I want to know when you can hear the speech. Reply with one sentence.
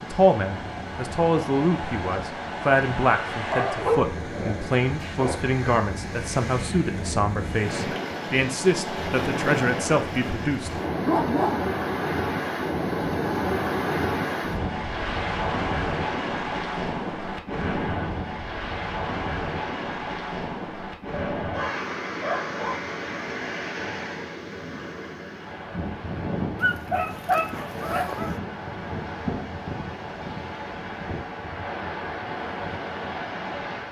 You can hear the speech from 0.0 to 10.8 s.